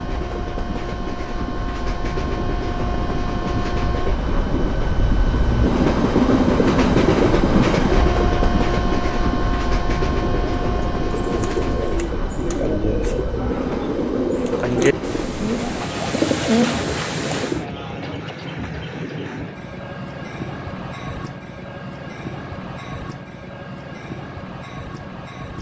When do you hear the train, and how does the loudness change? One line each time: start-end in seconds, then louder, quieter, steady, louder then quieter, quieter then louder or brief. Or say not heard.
0.0-25.5 louder then quieter.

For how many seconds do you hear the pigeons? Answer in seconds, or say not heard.
7 s.